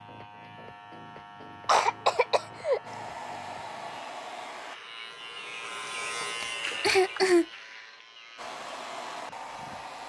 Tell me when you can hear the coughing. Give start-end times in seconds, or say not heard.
1.6-2.8, 6.4-7.5.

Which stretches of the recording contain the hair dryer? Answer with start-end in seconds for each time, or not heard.
2.9-4.8, 8.3-10.0.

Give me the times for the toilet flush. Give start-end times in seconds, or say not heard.
not heard.